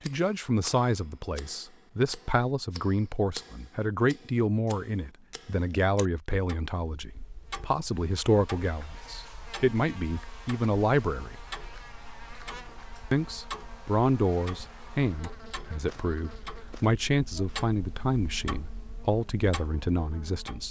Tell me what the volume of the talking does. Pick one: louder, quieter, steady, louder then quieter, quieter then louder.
steady.